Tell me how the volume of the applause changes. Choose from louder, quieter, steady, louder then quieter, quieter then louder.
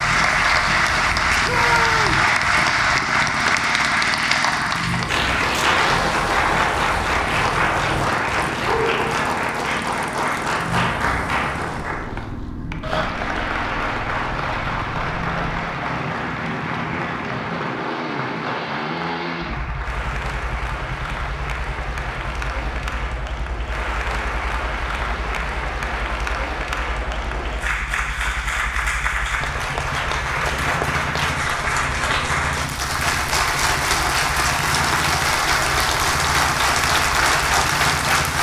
quieter then louder.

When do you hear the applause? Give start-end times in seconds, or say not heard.
0.0-38.3.